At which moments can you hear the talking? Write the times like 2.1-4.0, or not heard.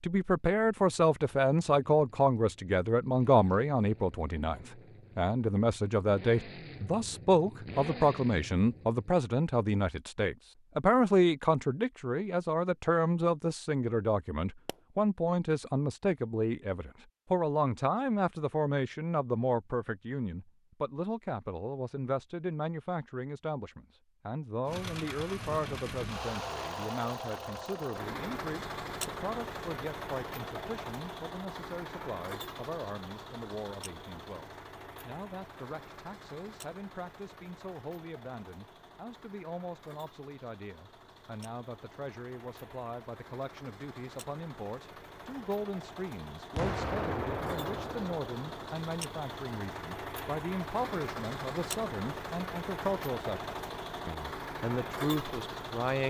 0.0-56.0.